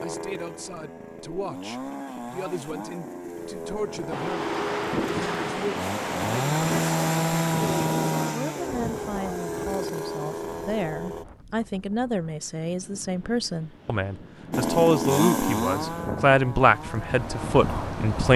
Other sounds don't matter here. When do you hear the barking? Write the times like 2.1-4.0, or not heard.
not heard.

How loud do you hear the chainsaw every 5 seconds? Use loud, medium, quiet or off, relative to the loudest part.
medium, loud, loud, loud.